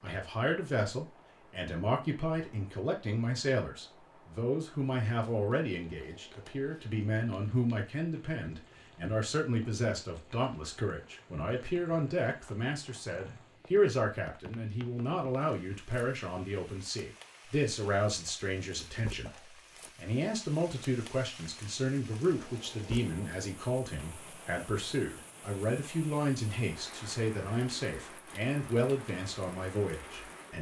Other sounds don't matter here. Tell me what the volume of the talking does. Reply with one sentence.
The loudness of the talking stays about the same.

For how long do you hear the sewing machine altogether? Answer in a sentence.
You can't hear the sewing machine here.